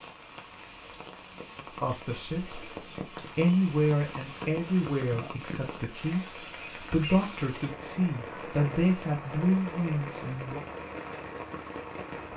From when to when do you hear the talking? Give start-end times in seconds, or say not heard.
1.7-2.7, 3.4-10.6.